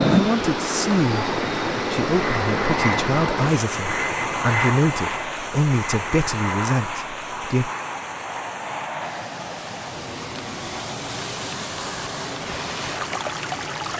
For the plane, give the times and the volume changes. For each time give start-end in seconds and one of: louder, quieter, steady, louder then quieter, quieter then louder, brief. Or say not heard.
0.0-13.9 quieter.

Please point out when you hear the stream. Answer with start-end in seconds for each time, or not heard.
0.0-13.9.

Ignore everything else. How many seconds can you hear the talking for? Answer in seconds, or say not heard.
8 s.